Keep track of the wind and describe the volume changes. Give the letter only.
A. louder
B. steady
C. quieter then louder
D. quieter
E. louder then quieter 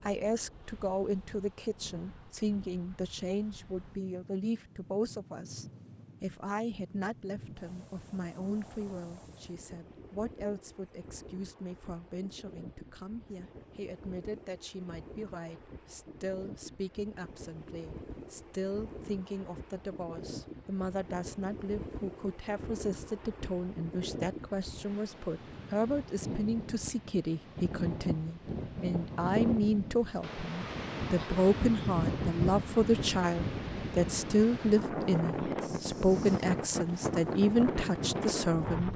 A.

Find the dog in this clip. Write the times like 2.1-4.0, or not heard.
not heard.